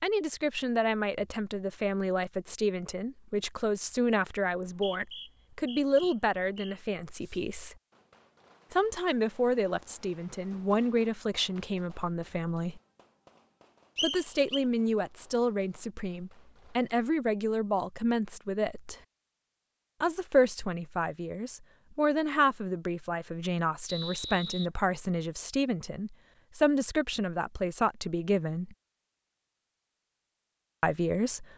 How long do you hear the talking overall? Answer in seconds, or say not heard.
26 s.